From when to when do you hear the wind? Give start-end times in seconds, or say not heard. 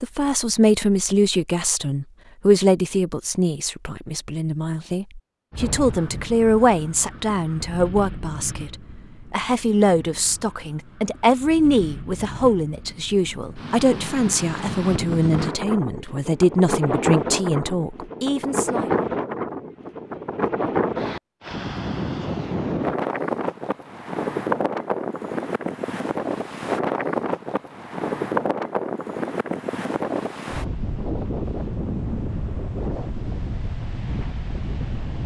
5.5-35.2.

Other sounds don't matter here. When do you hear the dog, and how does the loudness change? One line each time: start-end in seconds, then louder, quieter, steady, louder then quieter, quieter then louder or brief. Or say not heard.
not heard.